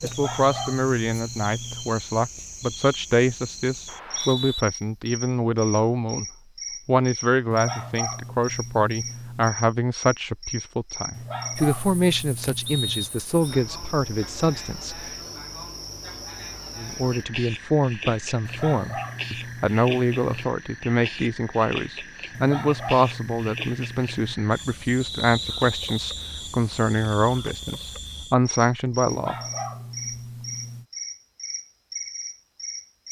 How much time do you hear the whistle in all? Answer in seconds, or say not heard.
3 s.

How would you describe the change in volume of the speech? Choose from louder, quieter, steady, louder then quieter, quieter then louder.
steady.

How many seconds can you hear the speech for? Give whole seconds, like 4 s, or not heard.
27 s.